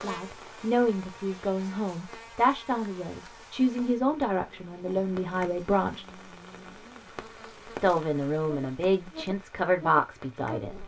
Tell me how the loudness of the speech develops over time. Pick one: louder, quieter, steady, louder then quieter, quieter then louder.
steady.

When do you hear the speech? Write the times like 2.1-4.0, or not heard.
0.0-6.0, 7.8-10.8.